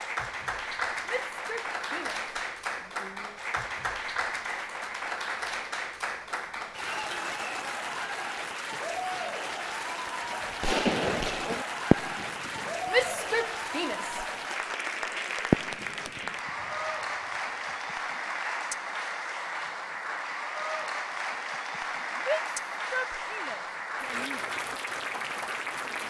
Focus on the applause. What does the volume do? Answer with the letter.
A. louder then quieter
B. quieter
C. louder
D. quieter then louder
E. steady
E.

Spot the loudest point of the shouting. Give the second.
13 s.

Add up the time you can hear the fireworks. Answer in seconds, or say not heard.
4 s.